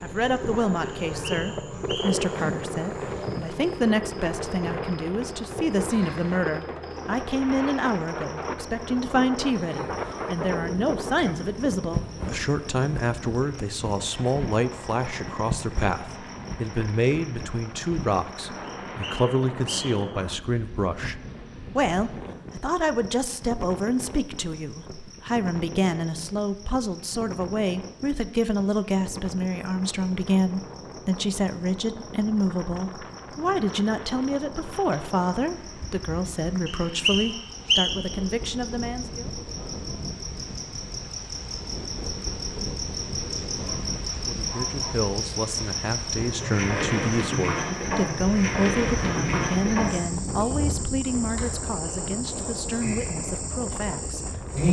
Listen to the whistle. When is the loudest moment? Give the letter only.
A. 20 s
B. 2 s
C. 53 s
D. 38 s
D.